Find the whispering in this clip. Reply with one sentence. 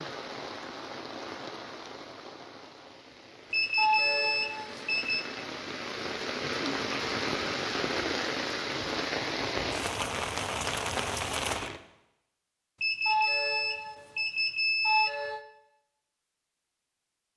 The whispering can't be heard in this clip.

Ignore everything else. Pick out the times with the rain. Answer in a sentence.
The rain can be heard from 0.0 to 11.8 s.